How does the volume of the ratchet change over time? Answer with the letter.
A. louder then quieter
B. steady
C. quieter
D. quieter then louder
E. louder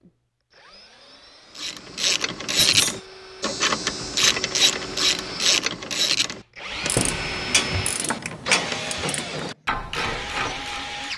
C.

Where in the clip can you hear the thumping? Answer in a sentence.
The thumping can be heard from 2.5 to 3.0 s and from 7.0 to 7.4 s.